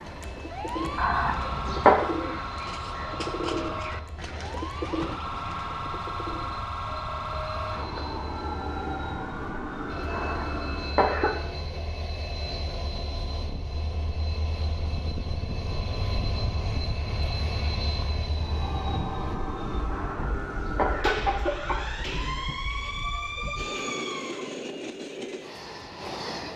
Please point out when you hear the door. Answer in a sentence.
You can't hear the door here.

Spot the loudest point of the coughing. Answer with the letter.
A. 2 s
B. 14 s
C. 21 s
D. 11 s
A.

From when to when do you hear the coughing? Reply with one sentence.
You can hear the coughing from 0.9 to 2.0 s, from 10.1 to 11.3 s and from 19.9 to 21.9 s.